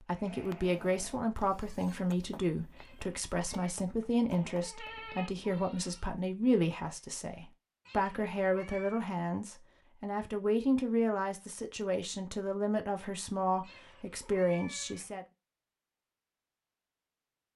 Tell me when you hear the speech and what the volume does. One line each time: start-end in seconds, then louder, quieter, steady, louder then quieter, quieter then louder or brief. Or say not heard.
0.0-15.2 steady.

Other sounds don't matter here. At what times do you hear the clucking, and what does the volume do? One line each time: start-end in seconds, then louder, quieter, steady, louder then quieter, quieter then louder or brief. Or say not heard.
not heard.